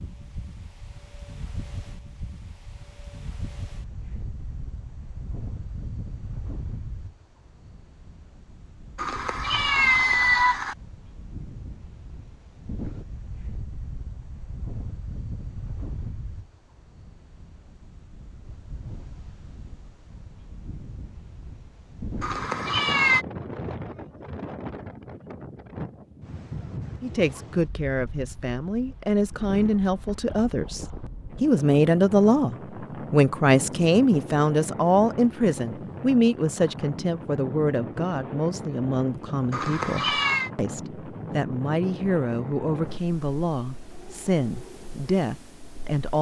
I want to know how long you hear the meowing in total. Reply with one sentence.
You can hear the meowing for 4 seconds altogether.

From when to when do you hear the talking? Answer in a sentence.
You can hear the talking from 27.0 to 46.1 s.